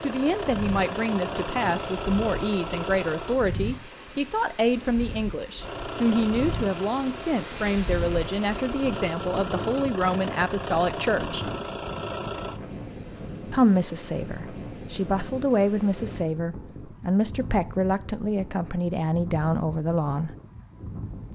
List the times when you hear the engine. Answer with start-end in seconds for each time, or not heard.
0.0-3.4, 5.5-12.6.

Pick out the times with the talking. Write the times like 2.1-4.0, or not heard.
0.0-11.4, 13.5-20.4.